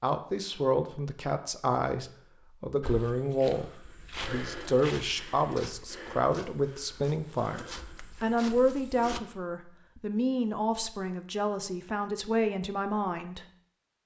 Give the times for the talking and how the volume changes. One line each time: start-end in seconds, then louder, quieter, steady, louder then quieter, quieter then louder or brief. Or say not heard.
0.0-13.4 steady.